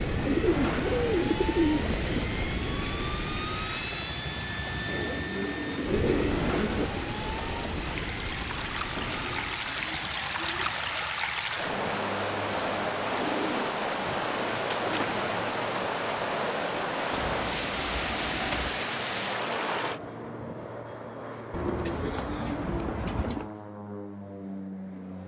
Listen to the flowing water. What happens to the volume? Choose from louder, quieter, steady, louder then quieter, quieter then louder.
louder.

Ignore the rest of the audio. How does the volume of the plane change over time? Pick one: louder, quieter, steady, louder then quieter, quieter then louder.
quieter.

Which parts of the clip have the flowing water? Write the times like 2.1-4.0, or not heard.
0.0-20.0.